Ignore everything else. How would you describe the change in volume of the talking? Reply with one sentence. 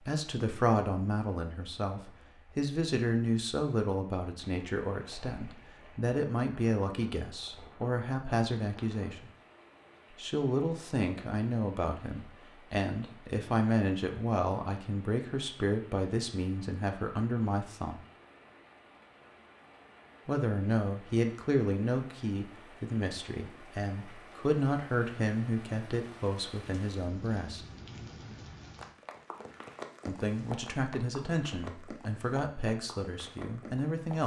The volume of the talking stays about the same.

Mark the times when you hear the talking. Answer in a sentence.
The talking can be heard from 0.1 to 9.3 s, from 10.2 to 17.9 s, from 20.2 to 27.6 s and from 30.1 to 34.2 s.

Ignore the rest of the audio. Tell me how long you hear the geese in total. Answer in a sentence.
You can't hear the geese here.